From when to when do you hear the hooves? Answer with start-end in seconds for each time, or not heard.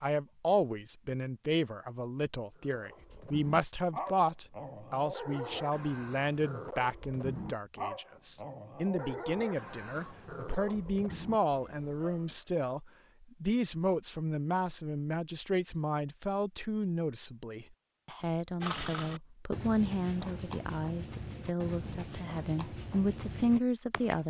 18.6-24.2.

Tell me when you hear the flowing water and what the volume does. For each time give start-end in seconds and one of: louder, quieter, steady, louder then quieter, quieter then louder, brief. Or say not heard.
not heard.